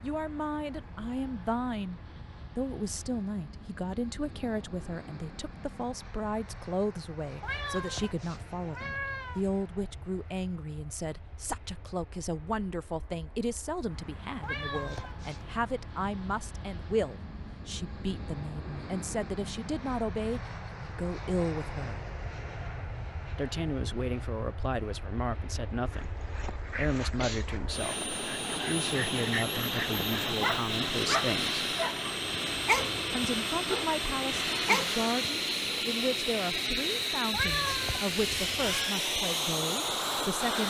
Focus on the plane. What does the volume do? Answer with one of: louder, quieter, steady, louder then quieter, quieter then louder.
louder.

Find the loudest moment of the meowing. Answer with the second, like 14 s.
38 s.